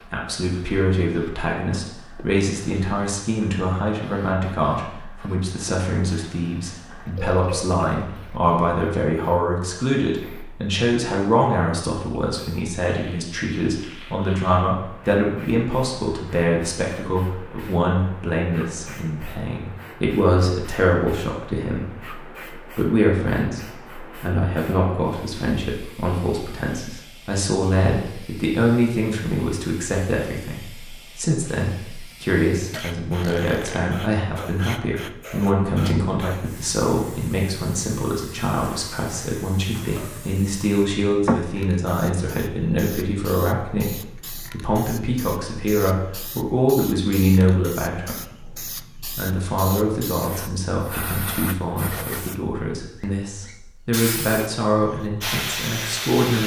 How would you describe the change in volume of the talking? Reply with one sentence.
The volume of the talking stays about the same.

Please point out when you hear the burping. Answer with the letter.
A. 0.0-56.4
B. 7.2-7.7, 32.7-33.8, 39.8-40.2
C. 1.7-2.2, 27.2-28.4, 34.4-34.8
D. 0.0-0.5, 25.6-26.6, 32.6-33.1
B.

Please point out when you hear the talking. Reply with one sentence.
You can hear the talking from 0.0 to 56.4 s.